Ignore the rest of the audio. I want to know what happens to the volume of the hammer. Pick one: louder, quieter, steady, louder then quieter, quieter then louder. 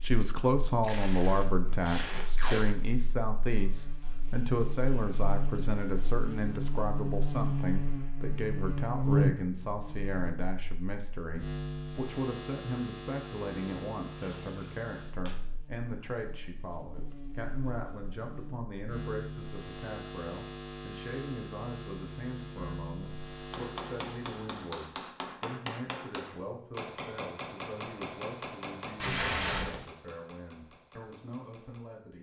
quieter.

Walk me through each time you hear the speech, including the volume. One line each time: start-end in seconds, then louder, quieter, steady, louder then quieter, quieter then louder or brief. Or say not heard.
0.0-32.1 quieter.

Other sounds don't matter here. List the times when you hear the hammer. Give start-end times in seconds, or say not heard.
23.4-32.0.